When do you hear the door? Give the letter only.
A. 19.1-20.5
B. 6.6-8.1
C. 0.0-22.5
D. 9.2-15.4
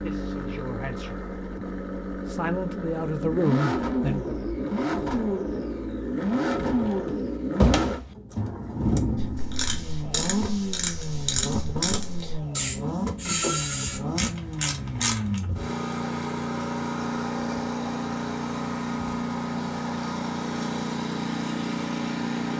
B.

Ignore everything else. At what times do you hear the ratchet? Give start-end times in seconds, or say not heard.
9.2-15.4.